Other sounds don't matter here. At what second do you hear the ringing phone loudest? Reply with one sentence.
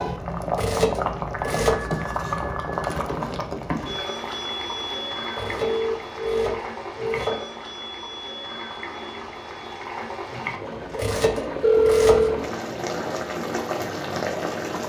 The volume of the ringing phone peaks at 12 seconds.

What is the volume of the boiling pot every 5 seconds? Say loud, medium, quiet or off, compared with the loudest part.
loud, medium, loud.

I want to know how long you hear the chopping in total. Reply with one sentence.
The chopping can be heard for 5 seconds in total.